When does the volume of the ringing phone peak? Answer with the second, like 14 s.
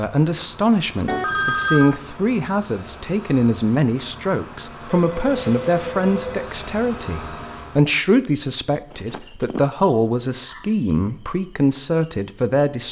2 s.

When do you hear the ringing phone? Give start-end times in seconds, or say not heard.
1.1-2.0, 4.9-6.5, 8.9-9.6.